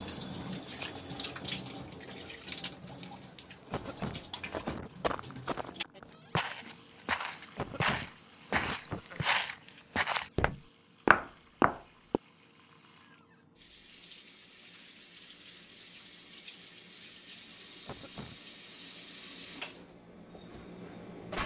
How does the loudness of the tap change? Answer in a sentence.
The volume of the tap goes down, then up.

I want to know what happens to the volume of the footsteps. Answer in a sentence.
The loudness of the footsteps goes up.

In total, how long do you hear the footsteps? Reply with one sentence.
The footsteps can be heard for 8 seconds in total.